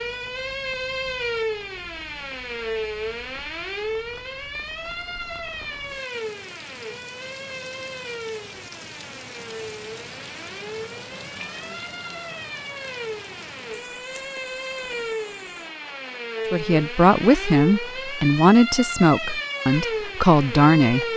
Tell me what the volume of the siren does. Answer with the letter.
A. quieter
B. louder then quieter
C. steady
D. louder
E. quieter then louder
E.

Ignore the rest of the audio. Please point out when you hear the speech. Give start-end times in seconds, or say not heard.
16.5-21.1.